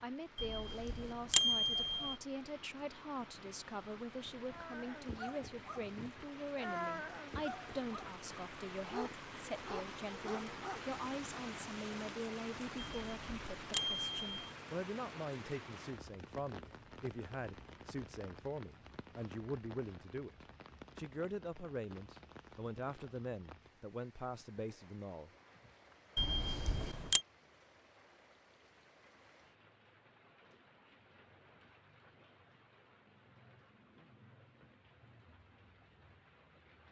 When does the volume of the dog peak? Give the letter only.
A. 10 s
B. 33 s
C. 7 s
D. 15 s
C.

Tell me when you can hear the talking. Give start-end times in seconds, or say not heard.
0.0-25.3.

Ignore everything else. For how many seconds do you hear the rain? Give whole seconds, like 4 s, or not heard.
37 s.